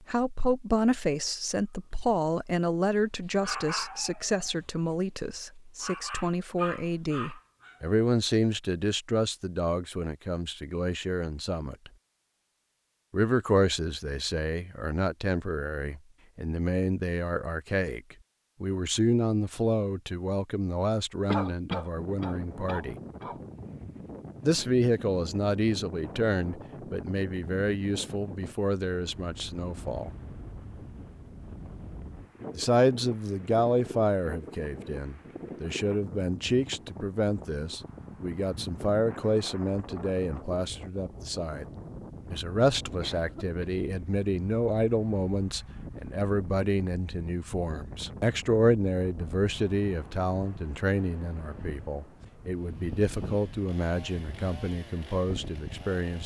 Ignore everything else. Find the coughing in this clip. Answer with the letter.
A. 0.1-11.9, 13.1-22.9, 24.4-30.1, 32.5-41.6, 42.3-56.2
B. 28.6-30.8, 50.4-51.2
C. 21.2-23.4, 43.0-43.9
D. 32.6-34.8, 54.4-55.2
C.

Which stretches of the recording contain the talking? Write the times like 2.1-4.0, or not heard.
0.1-11.9, 13.1-22.9, 24.4-30.1, 32.5-41.6, 42.3-56.2.